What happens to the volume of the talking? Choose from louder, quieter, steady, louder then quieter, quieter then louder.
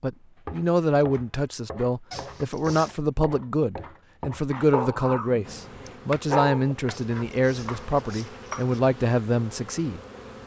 steady.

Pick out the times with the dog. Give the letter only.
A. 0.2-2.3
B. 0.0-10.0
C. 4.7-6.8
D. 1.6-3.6
C.